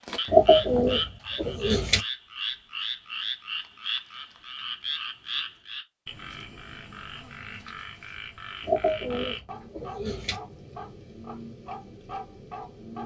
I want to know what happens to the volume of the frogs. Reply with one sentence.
The volume of the frogs goes down.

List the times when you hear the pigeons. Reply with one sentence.
You can hear the pigeons from 0.3 to 2.0 s and from 8.7 to 10.4 s.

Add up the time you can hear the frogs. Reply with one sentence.
You can hear the frogs for 13 seconds altogether.